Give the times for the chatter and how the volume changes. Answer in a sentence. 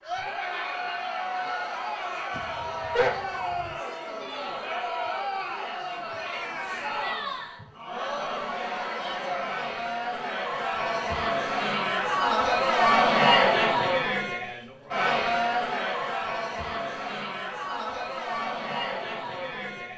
You can hear the chatter from 0.0 to 19.9 s, getting louder then quieter.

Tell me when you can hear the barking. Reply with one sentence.
You can hear the barking from 2.3 to 3.8 s.